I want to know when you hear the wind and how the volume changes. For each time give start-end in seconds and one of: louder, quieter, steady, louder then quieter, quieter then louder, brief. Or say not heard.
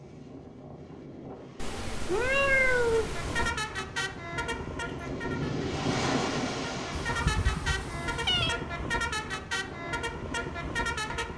0.0-11.3 louder then quieter.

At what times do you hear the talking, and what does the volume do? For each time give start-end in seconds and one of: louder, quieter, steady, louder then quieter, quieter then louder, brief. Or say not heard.
not heard.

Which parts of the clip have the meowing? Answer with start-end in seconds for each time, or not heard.
1.6-3.5, 6.9-8.6.